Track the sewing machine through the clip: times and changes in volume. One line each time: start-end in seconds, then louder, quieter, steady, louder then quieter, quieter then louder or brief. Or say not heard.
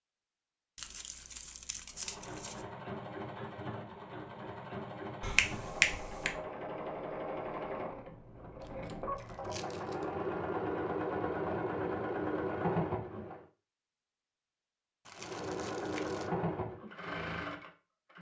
1.9-13.4 louder
15.2-18.1 brief.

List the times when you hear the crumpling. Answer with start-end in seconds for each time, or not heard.
0.8-2.6, 8.6-10.1, 15.1-16.3.